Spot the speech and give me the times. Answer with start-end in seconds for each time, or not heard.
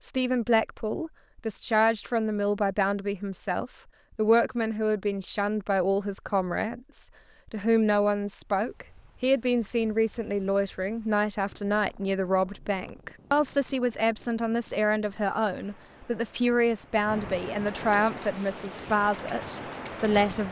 0.0-20.4.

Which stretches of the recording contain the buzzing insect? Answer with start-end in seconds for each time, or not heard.
not heard.